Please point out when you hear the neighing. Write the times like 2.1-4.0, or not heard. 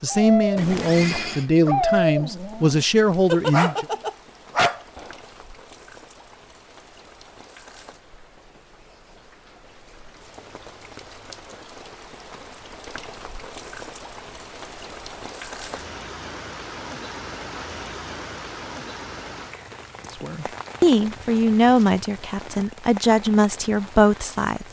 0.6-1.5.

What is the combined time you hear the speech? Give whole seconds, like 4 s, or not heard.
8 s.